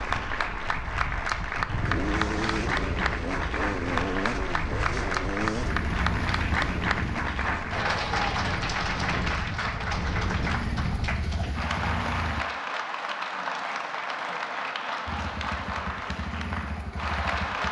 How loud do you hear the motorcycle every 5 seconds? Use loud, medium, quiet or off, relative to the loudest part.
loud, loud, loud, medium.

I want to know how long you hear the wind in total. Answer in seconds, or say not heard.
12 s.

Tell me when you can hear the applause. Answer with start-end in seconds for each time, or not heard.
0.0-17.6.